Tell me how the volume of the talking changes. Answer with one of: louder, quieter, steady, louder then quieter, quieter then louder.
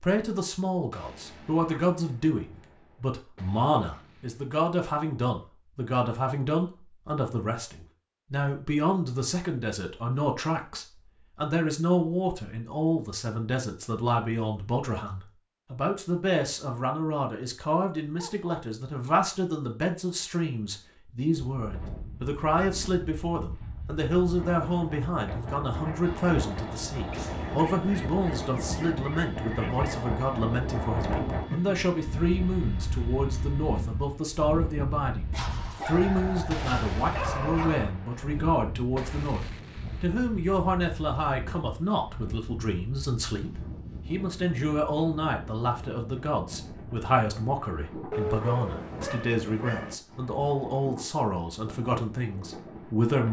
steady.